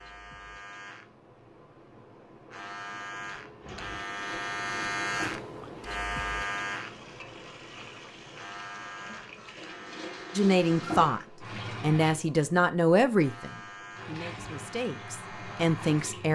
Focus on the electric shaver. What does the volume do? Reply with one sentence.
The loudness of the electric shaver goes up, then down.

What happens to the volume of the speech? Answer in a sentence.
The loudness of the speech goes down, then up.